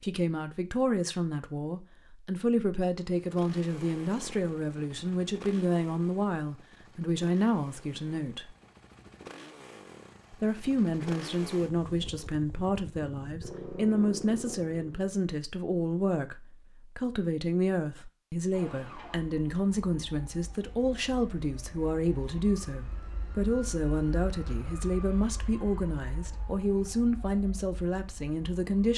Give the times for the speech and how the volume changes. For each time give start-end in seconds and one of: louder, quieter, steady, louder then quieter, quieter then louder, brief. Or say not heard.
0.0-8.5 steady
10.3-28.9 steady.